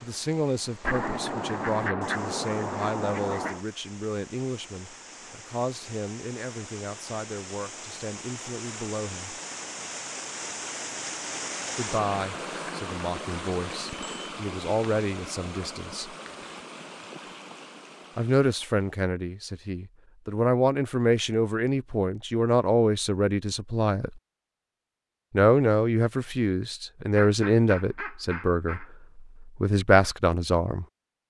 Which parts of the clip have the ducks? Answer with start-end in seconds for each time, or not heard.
0.8-3.6, 27.1-28.9.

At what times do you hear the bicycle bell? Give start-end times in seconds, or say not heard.
13.8-14.3.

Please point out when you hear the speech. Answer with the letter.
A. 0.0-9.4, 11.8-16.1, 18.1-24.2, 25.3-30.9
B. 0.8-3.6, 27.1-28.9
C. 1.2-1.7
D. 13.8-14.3
A.